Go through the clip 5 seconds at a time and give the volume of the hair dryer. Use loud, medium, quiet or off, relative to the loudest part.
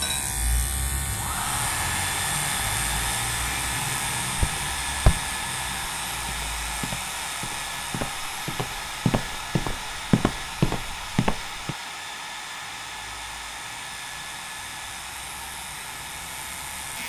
loud, loud, medium, medium.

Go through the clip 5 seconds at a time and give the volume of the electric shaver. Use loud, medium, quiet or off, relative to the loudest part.
loud, medium, quiet, medium.